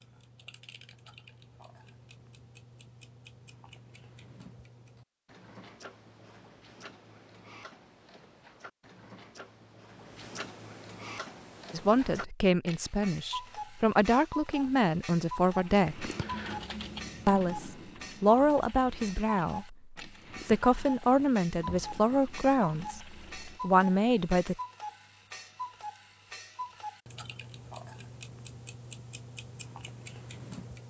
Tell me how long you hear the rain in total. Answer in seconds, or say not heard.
not heard.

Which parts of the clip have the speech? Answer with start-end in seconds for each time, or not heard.
11.7-16.1, 17.2-24.6.